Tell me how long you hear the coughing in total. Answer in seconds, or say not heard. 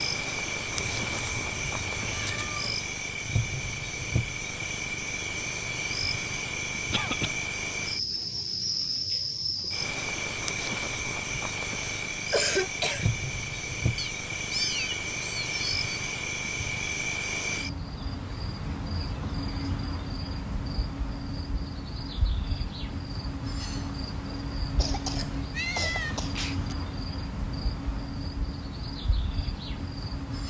3 s.